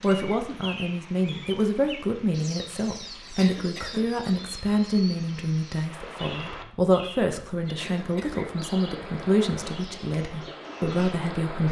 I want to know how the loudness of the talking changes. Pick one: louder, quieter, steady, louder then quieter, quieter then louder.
steady.